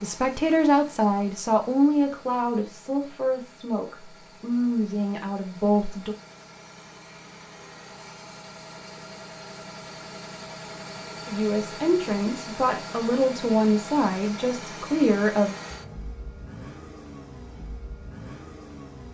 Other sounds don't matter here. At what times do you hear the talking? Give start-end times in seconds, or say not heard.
0.0-6.2, 11.2-15.6.